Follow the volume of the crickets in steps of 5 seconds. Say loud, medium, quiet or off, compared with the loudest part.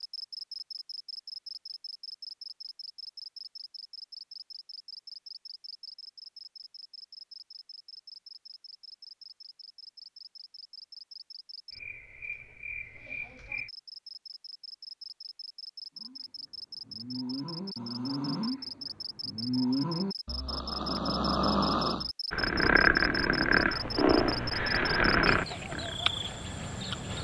medium, quiet, medium, medium, loud, loud.